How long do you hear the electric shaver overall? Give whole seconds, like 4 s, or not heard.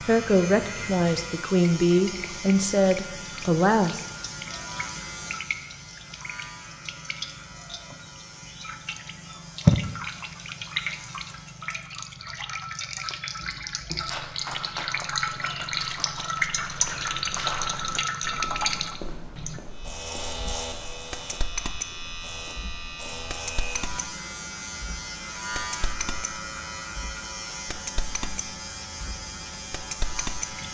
23 s.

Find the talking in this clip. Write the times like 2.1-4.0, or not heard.
0.1-4.0.